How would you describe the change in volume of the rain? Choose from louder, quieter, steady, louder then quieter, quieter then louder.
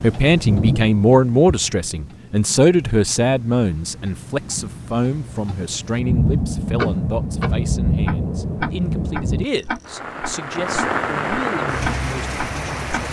quieter then louder.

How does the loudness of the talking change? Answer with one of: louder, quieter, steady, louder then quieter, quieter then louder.
quieter.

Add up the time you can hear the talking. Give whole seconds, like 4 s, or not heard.
13 s.